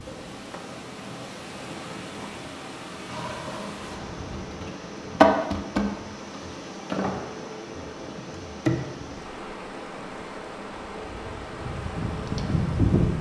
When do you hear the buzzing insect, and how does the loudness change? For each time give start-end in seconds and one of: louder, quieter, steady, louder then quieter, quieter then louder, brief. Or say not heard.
0.0-13.1 louder then quieter.